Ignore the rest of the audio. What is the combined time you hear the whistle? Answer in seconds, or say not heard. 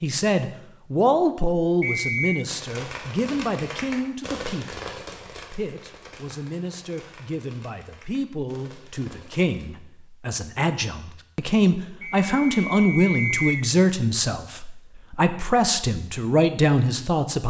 2 s.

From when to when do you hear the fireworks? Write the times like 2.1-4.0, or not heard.
2.5-9.7.